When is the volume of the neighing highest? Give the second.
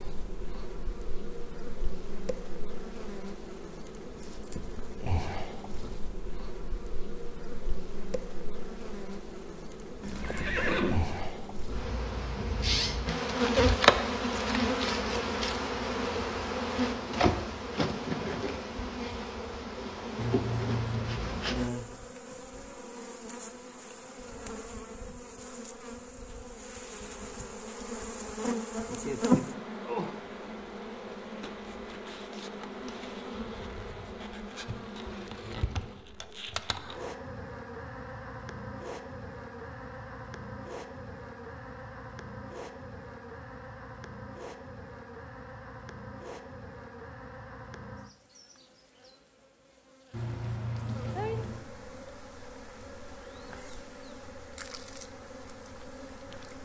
11 s.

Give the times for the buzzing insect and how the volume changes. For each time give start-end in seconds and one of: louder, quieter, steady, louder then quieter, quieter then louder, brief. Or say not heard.
0.0-56.6 louder then quieter.